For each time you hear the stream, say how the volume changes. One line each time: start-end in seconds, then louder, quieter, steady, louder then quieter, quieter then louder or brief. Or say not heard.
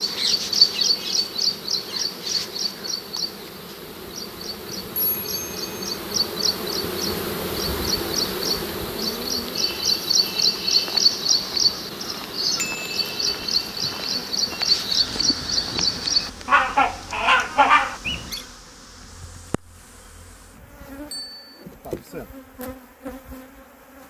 not heard.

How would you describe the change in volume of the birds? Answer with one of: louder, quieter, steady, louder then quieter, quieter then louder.
quieter then louder.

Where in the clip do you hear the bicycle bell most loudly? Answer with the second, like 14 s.
13 s.